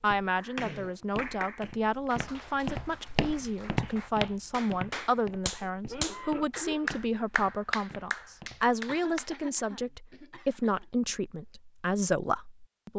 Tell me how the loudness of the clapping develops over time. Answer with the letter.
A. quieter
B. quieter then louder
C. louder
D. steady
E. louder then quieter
B.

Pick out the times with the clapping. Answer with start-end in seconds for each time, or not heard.
0.3-9.3.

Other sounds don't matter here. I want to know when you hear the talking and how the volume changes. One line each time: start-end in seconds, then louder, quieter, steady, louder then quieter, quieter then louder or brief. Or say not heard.
0.0-12.9 steady.